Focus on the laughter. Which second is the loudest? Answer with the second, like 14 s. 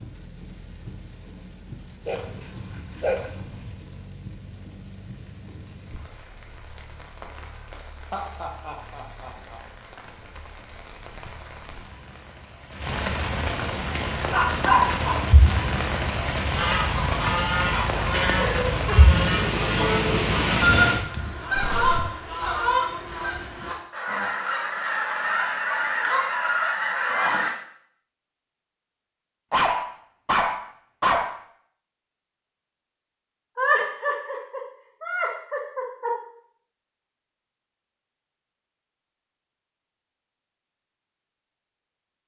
34 s.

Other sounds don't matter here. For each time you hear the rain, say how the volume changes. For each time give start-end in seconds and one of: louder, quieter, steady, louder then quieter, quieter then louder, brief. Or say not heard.
0.0-22.1 louder.